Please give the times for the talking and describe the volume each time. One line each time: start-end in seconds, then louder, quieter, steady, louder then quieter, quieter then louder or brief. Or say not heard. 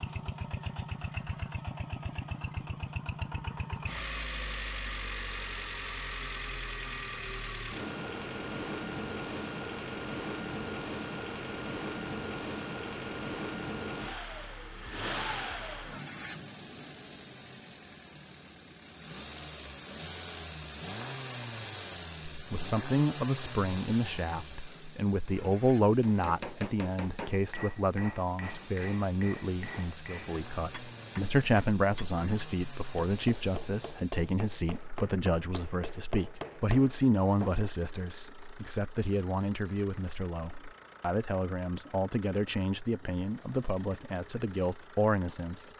22.3-45.7 steady.